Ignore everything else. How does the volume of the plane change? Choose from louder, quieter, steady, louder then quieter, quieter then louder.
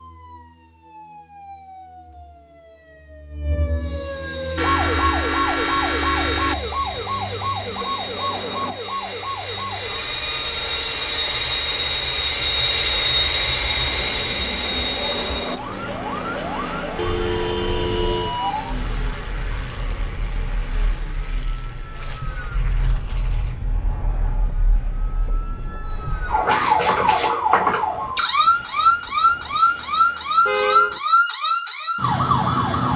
louder then quieter.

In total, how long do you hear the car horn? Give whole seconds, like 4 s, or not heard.
4 s.